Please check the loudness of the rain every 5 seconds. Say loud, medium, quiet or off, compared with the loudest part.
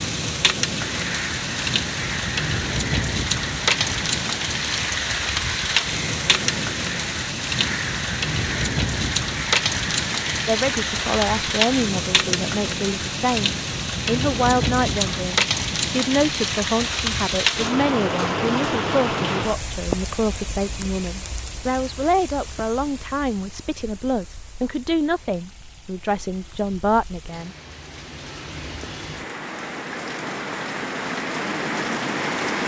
loud, loud, loud, loud, quiet, quiet, loud.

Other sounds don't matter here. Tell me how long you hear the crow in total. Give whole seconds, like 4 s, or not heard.
11 s.